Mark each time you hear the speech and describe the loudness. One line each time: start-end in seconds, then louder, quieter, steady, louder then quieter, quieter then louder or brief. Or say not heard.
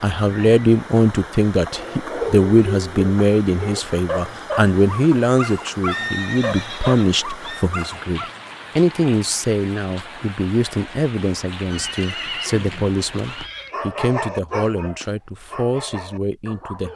0.0-16.9 quieter.